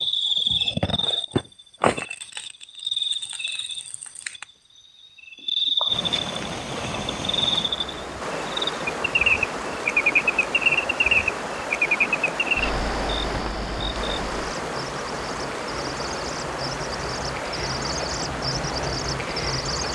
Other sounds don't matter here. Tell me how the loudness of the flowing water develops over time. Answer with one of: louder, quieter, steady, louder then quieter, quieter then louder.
steady.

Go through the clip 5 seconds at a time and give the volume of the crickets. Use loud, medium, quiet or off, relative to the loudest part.
loud, loud, loud, medium.